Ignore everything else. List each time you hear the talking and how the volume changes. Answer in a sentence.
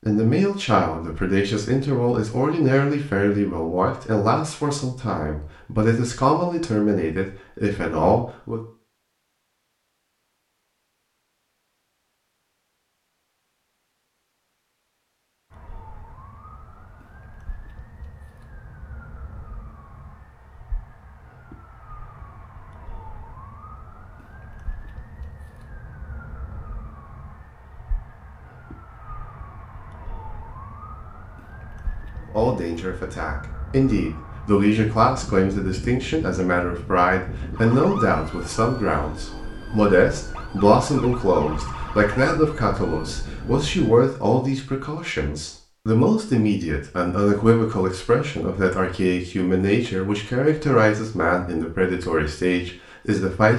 The talking can be heard from 0.0 to 8.6 s, at a steady volume; and from 32.3 to 53.5 s, at a steady volume.